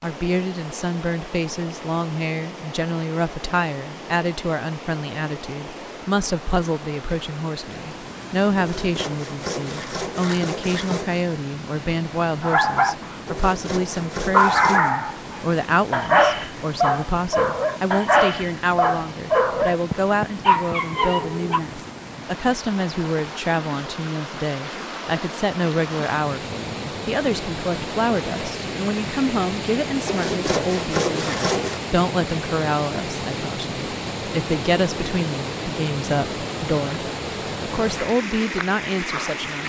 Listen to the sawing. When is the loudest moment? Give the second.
31 s.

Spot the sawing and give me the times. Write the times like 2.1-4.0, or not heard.
8.6-11.2, 13.2-14.9, 30.1-31.8.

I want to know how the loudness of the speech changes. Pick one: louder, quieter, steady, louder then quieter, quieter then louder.
steady.